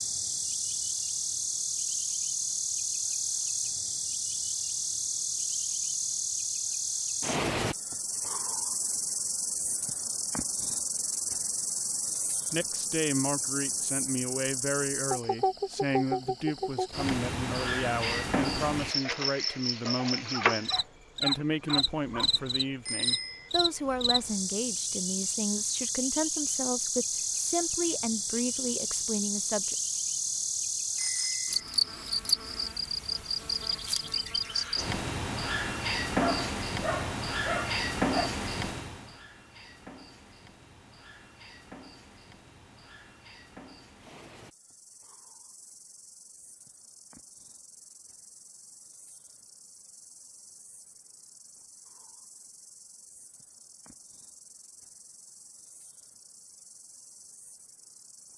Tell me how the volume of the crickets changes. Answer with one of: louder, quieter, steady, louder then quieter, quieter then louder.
quieter.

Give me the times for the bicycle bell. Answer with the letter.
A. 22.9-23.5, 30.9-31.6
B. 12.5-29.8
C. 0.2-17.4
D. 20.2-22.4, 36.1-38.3
A.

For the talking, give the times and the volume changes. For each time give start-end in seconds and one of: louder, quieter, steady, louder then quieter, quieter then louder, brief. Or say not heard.
12.5-29.8 steady.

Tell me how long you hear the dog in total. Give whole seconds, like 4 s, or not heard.
4 s.